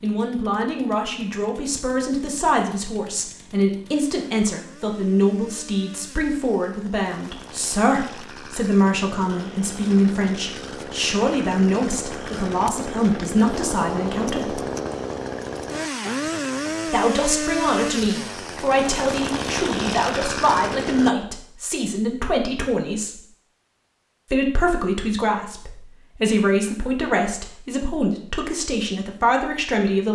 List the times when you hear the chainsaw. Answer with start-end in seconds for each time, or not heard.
0.0-21.1.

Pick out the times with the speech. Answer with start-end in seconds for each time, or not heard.
0.0-14.6, 16.9-23.2, 24.3-30.0.